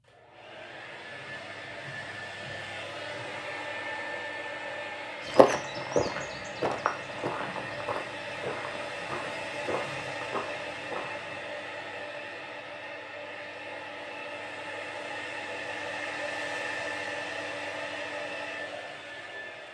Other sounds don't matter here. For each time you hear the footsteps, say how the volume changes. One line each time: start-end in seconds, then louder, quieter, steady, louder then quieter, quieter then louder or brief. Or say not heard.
5.2-11.4 quieter.